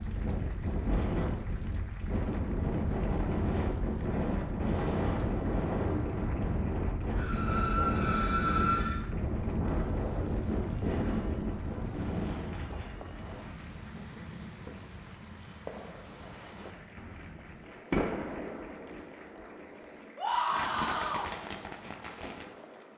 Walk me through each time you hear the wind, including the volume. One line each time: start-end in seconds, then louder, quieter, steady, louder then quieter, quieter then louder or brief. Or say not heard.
0.0-22.9 quieter.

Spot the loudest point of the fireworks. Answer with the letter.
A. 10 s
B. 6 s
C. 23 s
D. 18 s
D.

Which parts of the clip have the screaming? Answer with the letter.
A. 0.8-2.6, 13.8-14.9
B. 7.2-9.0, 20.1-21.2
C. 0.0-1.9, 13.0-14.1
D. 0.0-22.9
B.